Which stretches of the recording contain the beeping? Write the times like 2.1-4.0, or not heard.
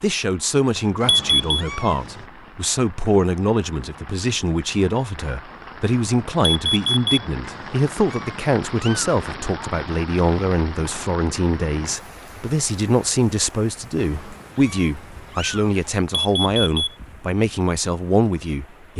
1.1-1.6, 6.5-7.2, 16.2-16.9.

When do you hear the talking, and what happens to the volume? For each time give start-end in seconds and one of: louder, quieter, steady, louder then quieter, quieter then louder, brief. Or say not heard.
0.0-18.9 steady.